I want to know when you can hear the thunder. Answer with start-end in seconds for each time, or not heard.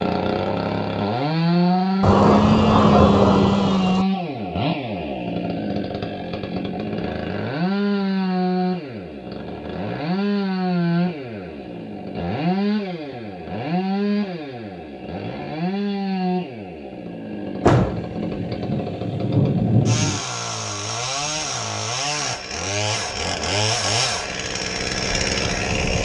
2.0-4.0, 17.6-20.2.